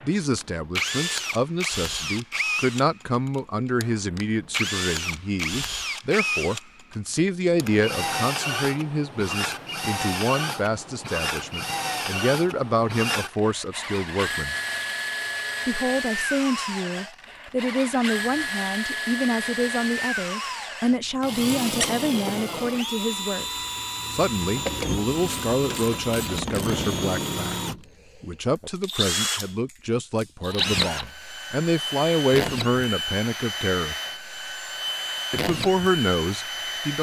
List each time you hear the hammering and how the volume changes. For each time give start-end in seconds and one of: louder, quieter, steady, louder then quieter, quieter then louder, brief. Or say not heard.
not heard.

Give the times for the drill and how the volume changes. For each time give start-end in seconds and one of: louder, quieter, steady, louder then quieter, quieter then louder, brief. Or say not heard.
0.0-36.9 steady.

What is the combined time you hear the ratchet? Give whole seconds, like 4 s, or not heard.
2 s.